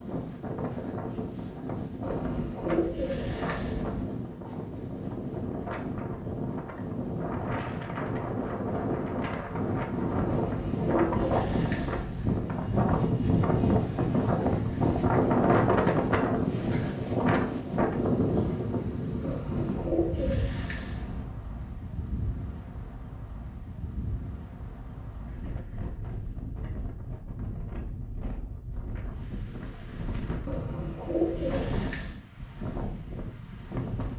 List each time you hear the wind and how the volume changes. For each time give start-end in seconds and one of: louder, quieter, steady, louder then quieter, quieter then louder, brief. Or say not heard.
0.0-34.1 louder then quieter.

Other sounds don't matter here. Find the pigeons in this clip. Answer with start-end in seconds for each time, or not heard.
2.0-4.0, 10.2-12.2, 19.2-21.2, 30.4-32.2.